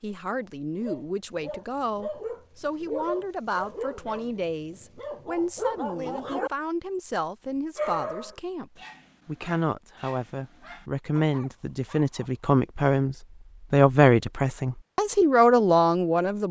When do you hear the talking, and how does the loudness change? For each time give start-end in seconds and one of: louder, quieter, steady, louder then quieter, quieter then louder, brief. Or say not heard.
0.0-16.4 louder.